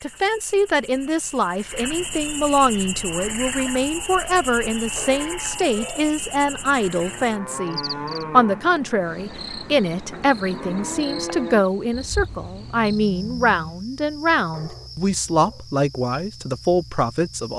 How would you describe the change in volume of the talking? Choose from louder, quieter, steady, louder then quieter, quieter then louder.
steady.